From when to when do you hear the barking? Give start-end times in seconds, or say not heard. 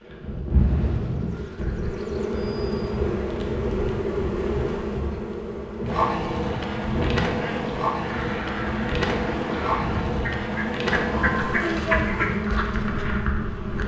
not heard.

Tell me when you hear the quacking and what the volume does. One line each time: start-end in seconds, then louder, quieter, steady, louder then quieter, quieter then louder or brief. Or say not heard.
7.3-12.2 louder.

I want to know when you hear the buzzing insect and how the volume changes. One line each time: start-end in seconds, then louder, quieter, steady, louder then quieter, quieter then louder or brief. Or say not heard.
0.1-13.8 steady.